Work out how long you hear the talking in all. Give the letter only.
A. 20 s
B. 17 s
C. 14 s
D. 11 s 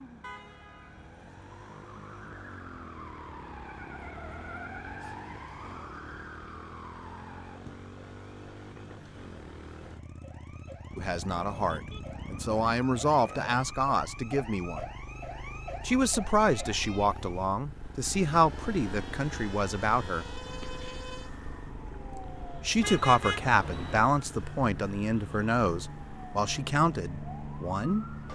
C.